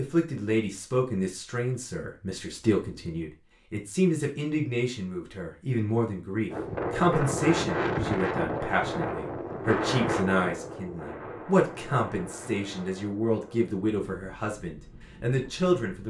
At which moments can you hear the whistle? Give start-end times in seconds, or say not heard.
not heard.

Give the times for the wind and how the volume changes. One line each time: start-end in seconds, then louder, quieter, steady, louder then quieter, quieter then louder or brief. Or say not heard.
6.5-16.0 quieter.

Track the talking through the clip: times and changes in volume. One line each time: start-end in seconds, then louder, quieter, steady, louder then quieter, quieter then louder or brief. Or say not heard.
0.0-16.0 steady.